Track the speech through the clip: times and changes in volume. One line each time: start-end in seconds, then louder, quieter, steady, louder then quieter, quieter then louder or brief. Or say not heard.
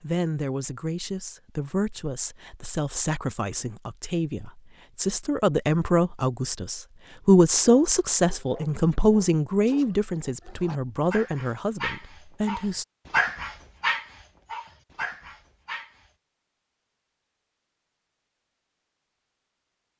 0.0-12.8 louder then quieter.